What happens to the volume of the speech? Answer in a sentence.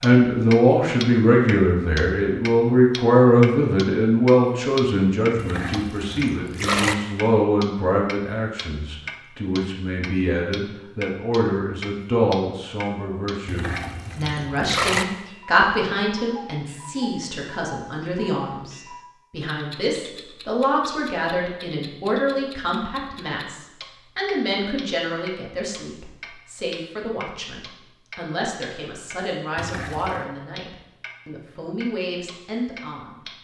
The volume of the speech goes down.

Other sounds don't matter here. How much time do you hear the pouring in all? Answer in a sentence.
The pouring can be heard for 4 seconds in total.